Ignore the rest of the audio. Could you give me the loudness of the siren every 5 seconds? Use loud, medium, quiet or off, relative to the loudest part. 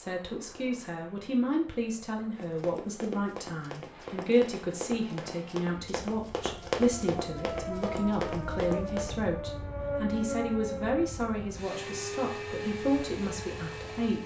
off, loud, loud.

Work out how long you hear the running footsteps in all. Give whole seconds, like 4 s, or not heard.
7 s.